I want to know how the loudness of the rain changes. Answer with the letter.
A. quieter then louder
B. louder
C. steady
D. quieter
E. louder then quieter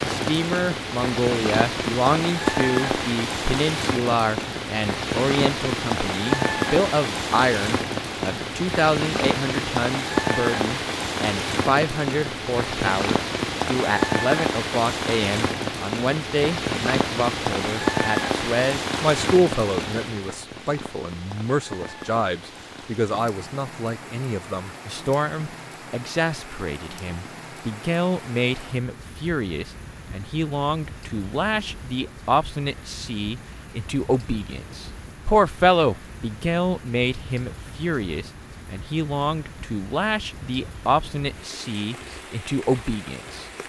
D.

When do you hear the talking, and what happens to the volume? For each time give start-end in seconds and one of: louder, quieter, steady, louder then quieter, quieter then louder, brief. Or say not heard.
0.0-43.5 steady.